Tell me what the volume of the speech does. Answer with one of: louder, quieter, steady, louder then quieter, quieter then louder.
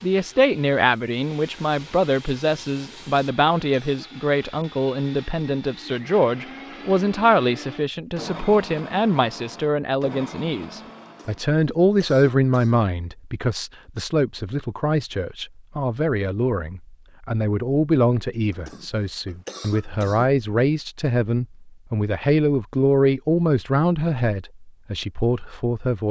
steady.